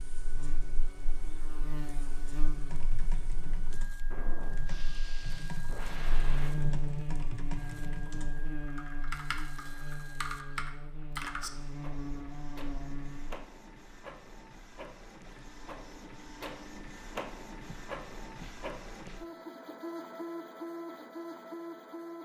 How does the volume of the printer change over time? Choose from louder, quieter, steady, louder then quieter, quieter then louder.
louder.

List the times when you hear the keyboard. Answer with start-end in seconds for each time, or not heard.
2.5-11.5.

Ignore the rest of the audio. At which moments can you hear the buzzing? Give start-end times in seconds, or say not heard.
0.0-13.4.